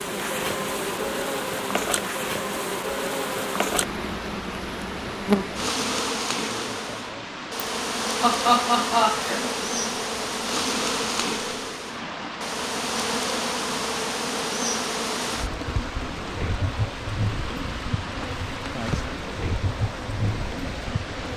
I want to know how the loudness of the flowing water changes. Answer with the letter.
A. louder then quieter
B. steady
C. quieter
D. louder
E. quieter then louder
B.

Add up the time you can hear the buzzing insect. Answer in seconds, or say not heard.
21 s.